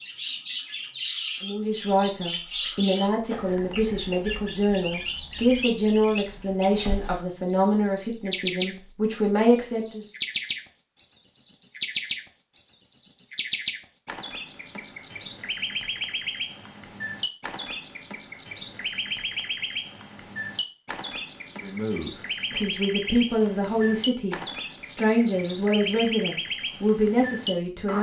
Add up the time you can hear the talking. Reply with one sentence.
You can hear the talking for 15 seconds altogether.